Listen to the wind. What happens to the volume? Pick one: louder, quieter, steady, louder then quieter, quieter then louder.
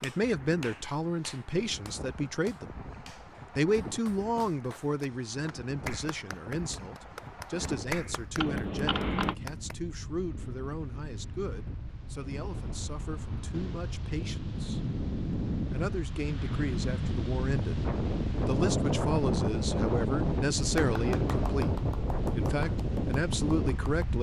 louder.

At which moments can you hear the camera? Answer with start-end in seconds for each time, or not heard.
8.3-9.3.